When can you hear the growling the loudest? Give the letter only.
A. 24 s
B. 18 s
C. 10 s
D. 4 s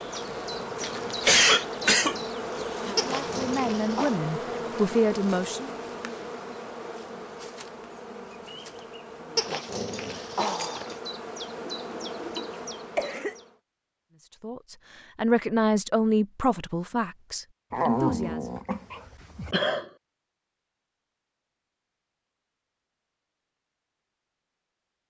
B.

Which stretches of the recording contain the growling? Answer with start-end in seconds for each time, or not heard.
3.0-4.2, 9.3-10.9, 17.7-19.6.